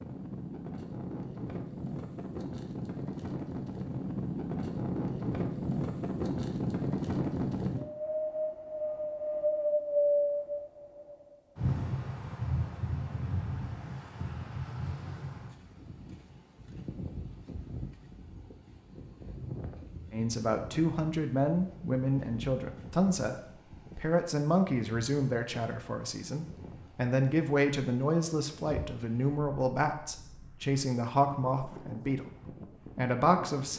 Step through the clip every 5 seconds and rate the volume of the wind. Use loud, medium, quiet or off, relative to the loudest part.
medium, loud, loud, quiet, quiet, quiet, quiet.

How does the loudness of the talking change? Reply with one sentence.
The volume of the talking stays about the same.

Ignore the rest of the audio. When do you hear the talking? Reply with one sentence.
You can hear the talking from 20.1 to 33.7 s.